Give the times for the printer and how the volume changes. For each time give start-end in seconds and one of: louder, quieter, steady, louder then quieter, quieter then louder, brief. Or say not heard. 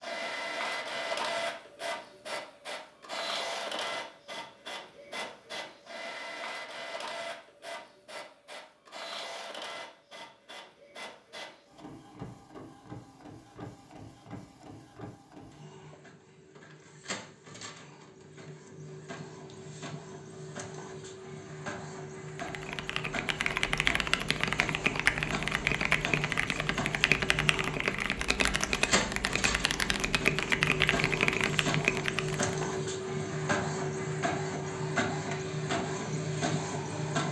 0.0-37.2 quieter then louder.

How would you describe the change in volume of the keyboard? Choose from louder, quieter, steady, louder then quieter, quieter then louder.
steady.